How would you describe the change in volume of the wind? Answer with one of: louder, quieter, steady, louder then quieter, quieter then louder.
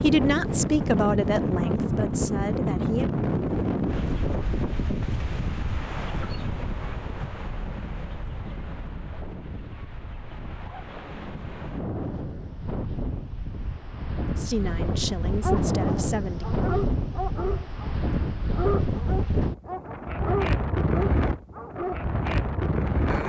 quieter then louder.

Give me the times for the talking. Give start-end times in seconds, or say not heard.
0.0-3.1, 14.3-16.5.